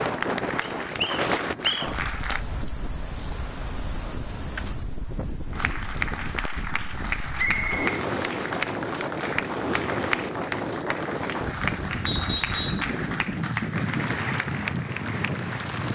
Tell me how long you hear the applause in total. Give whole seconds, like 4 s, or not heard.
13 s.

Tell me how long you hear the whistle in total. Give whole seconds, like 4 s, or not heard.
3 s.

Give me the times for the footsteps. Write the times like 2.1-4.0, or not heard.
not heard.